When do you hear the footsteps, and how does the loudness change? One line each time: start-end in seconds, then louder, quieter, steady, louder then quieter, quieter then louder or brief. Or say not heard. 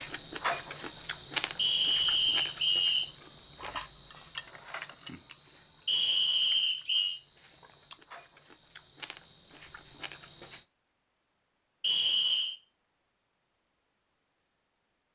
not heard.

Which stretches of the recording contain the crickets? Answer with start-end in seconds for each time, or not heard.
0.0-10.7.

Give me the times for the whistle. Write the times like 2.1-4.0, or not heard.
1.6-3.0, 5.8-7.2, 11.8-12.6.